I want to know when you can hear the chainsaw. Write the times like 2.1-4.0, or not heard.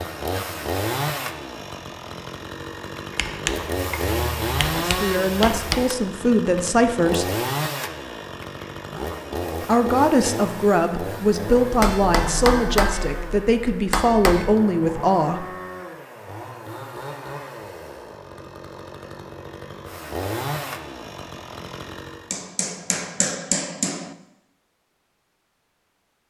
0.0-22.4.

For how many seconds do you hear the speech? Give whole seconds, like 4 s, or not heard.
8 s.